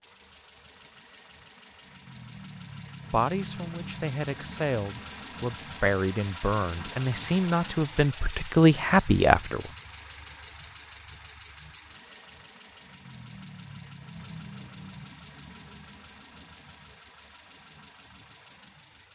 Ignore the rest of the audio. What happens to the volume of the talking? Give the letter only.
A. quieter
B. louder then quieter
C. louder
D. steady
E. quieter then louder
C.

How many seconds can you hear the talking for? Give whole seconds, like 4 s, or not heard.
7 s.